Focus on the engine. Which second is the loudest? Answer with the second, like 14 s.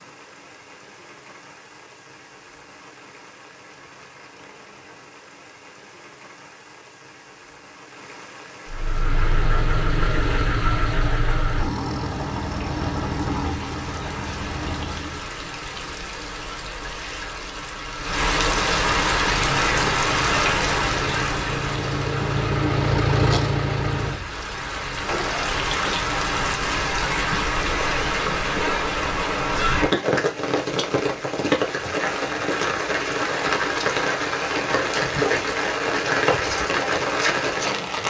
23 s.